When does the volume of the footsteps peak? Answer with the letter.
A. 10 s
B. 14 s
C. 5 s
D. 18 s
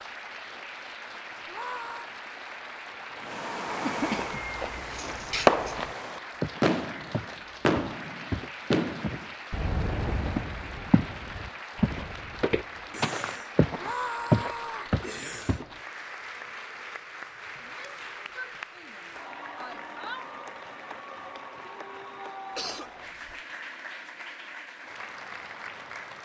B.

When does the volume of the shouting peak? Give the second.
14 s.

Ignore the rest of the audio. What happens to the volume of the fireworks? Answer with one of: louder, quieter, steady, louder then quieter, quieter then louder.
louder then quieter.